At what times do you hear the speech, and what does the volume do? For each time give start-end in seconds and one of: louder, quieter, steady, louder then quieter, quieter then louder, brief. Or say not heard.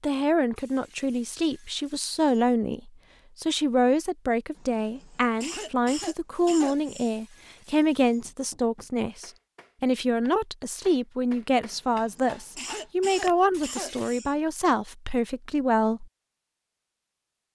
0.0-16.1 steady.